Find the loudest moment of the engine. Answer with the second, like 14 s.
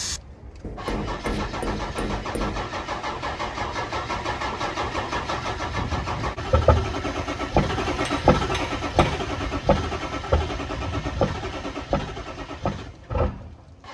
8 s.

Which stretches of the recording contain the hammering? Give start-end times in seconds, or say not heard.
0.6-2.6, 8.1-9.2.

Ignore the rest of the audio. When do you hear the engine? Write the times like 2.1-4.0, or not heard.
0.0-13.8.